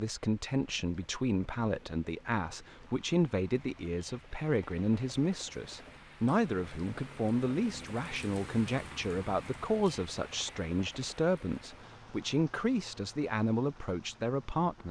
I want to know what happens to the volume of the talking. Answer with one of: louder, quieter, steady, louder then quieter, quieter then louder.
steady.